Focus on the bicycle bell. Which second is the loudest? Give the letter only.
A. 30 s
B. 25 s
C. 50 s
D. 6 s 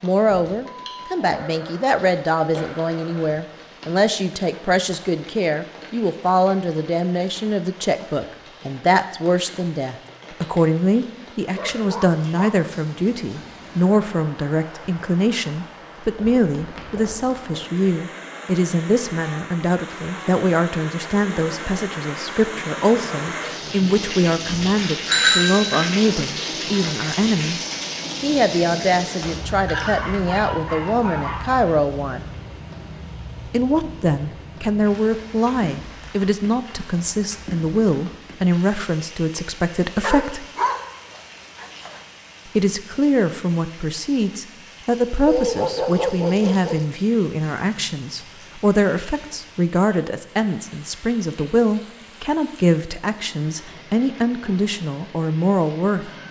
B.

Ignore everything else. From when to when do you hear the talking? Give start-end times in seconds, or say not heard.
0.0-27.6, 28.2-32.2, 33.5-40.5, 42.5-56.1.